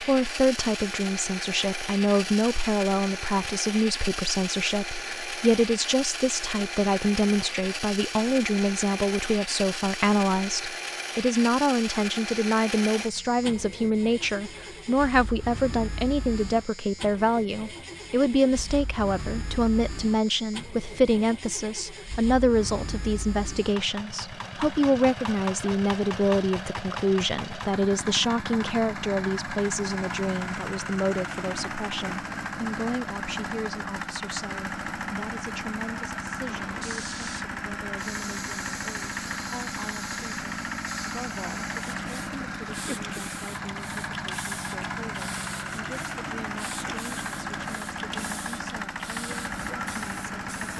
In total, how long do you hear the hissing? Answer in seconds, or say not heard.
14 s.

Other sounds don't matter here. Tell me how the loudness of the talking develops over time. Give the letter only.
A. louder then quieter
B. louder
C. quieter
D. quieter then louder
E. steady
C.